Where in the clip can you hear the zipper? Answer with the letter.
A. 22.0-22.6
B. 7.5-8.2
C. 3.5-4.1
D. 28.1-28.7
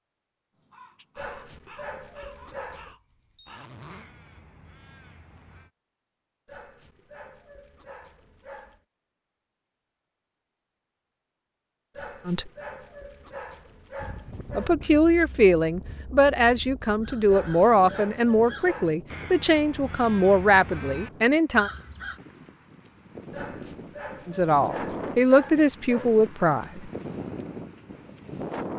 C.